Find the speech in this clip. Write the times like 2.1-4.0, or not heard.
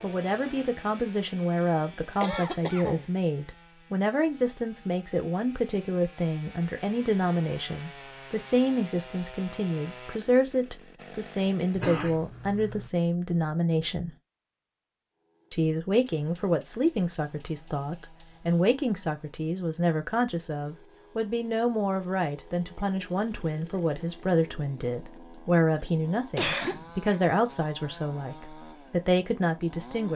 0.0-14.1, 15.5-30.1.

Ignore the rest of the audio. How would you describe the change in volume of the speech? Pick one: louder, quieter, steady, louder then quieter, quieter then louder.
steady.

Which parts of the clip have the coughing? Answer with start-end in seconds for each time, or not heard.
2.2-3.1, 11.8-12.9, 26.4-27.2.